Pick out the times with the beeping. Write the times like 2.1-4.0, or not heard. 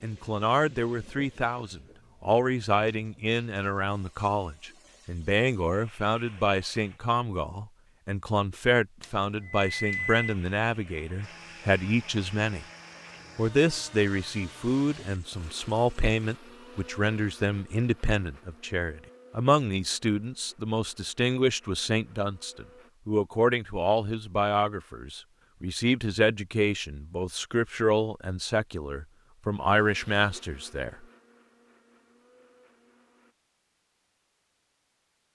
9.0-10.2.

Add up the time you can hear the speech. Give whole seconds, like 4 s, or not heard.
30 s.